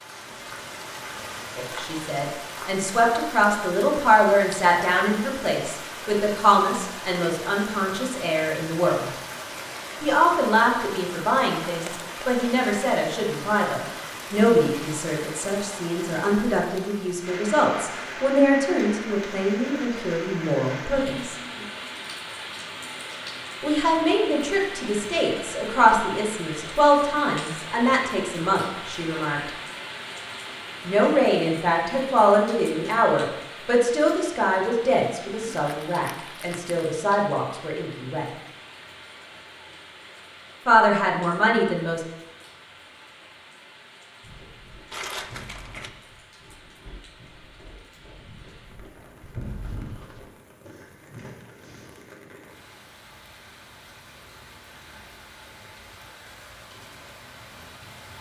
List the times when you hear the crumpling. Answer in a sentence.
The crumpling can be heard from 11.8 to 12.4 s, from 35.4 to 36.8 s and from 44.9 to 45.9 s.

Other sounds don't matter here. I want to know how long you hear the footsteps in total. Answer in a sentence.
You can hear the footsteps for 8 seconds altogether.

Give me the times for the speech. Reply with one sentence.
The speech can be heard from 1.6 to 9.1 s, from 10.0 to 21.4 s, from 23.6 to 29.5 s, from 30.9 to 38.2 s and from 40.6 to 42.0 s.